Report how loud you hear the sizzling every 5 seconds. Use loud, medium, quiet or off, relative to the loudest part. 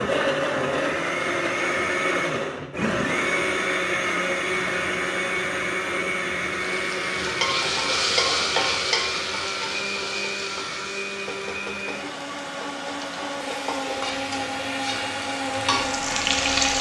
off, loud, medium, loud.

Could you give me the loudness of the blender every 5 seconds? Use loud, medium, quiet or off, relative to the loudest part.
loud, loud, medium, loud.